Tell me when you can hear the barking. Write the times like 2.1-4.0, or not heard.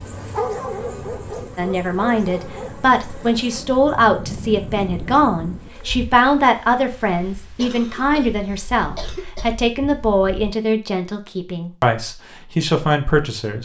0.0-2.9.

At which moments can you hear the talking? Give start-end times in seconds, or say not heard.
1.6-13.5.